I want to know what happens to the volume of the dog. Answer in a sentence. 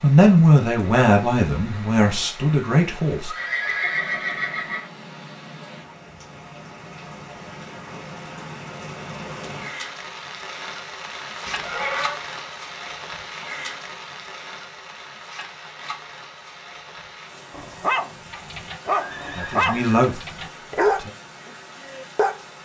The loudness of the dog goes up, then down.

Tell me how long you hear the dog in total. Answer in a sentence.
You can hear the dog for 5 seconds altogether.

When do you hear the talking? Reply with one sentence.
You can hear the talking from 0.0 to 3.3 s and from 19.4 to 21.1 s.